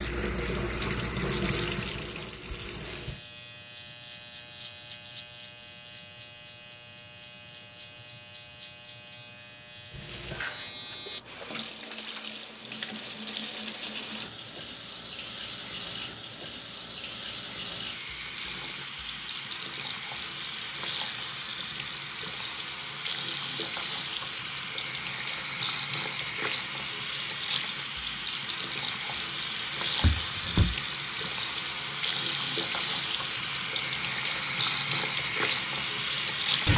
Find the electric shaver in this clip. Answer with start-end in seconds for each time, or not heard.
2.9-11.7.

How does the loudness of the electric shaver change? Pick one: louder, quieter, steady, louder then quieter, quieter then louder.
steady.